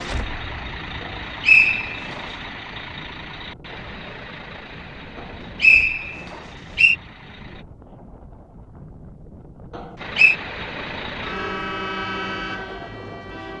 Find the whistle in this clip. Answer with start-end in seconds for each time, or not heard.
1.0-2.2, 5.6-7.0, 9.8-10.3.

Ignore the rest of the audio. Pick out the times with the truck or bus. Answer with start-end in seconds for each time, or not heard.
0.0-7.7, 9.9-13.5.